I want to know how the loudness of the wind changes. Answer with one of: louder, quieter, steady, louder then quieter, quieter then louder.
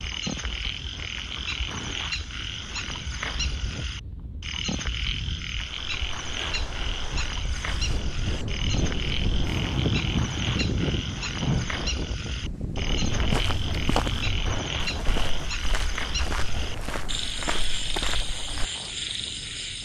louder then quieter.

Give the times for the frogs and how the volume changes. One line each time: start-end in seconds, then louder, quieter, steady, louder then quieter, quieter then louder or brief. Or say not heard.
0.0-19.8 steady.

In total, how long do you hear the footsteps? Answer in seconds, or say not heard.
6 s.